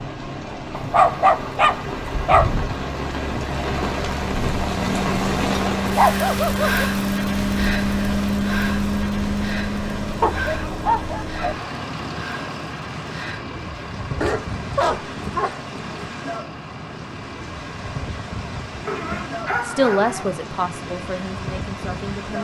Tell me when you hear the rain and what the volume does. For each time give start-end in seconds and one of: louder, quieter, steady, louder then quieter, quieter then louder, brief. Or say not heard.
0.0-22.3 quieter.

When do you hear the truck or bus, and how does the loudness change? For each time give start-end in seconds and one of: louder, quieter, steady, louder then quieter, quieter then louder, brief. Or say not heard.
0.0-22.3 louder then quieter.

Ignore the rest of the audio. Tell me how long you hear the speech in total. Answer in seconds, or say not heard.
3 s.